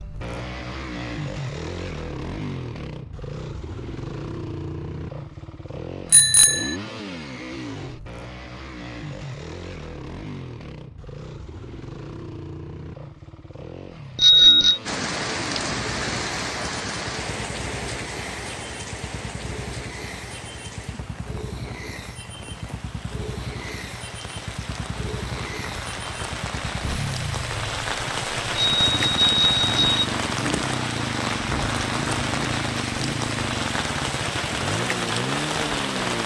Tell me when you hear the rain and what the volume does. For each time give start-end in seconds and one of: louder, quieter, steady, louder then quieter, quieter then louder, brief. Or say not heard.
14.8-36.2 quieter then louder.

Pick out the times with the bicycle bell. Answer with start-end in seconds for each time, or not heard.
6.1-6.8, 14.2-14.8, 28.6-30.1.